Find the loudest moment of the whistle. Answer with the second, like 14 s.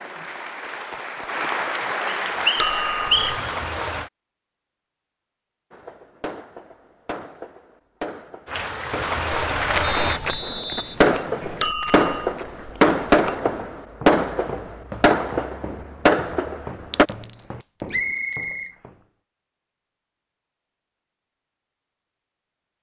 3 s.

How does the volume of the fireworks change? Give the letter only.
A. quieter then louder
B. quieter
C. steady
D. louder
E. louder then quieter
D.